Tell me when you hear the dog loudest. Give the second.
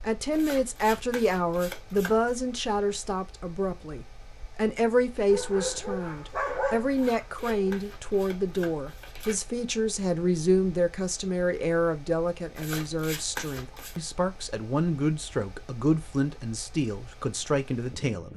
7 s.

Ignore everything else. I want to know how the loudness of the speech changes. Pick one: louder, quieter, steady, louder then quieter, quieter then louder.
steady.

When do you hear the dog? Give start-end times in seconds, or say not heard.
5.2-7.8.